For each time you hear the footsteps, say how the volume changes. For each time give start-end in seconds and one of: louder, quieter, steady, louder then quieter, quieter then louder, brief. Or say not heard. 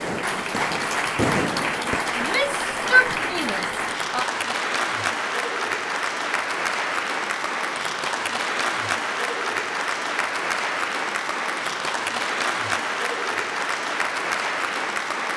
not heard.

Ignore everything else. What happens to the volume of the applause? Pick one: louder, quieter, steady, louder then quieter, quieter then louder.
steady.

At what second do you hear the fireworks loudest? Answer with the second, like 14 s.
1 s.